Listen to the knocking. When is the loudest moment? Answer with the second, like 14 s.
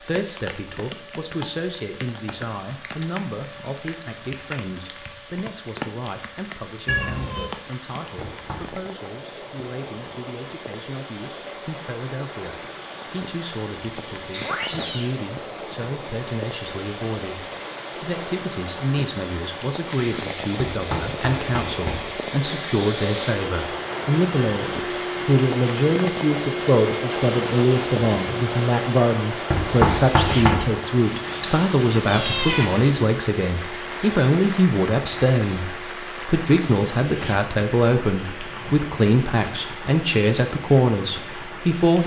30 s.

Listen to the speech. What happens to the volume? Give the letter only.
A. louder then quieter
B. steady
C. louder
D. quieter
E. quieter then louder
C.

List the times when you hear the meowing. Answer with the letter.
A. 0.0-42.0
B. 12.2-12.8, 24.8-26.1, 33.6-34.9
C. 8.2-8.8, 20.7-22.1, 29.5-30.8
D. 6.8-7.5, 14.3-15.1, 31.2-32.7
D.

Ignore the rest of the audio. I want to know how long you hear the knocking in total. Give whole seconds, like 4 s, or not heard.
3 s.